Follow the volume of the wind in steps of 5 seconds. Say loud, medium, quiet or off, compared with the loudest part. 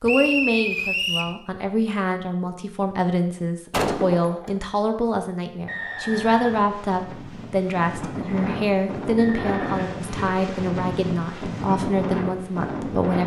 off, loud, loud.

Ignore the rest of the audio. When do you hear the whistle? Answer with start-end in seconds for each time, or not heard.
0.1-1.4, 5.7-6.7, 9.2-9.9.